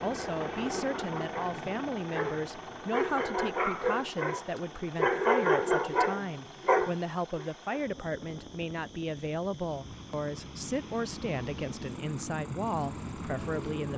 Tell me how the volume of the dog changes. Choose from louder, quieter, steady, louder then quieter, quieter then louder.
louder.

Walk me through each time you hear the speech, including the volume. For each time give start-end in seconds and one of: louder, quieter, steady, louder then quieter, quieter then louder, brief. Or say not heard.
0.0-13.9 steady.